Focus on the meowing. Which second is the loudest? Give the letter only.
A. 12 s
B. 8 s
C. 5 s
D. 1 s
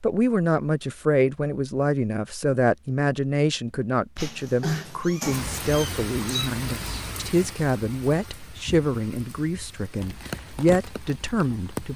C.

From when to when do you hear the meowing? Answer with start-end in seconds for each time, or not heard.
4.2-6.5.